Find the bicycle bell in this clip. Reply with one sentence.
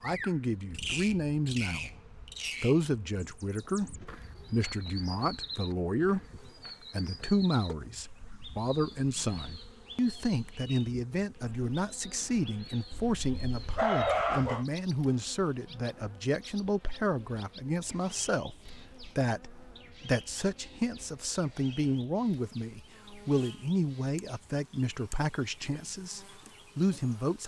The bicycle bell can't be heard in this clip.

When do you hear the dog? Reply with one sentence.
The dog can be heard from 12.9 to 14.7 s.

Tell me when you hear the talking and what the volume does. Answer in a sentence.
The talking can be heard briefly from 0.0 to 1.9 s; and from 2.6 to 27.4 s, at a steady volume.